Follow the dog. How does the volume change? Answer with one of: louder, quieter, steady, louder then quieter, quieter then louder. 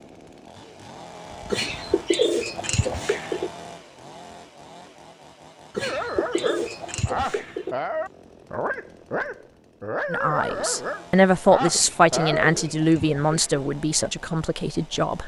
steady.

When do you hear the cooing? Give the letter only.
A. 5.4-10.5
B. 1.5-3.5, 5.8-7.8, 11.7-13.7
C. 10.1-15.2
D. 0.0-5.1
B.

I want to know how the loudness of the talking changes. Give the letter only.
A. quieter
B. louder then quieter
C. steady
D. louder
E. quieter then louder
A.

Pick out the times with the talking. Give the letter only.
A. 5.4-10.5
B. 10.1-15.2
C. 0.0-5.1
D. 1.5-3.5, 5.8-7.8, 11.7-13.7
B.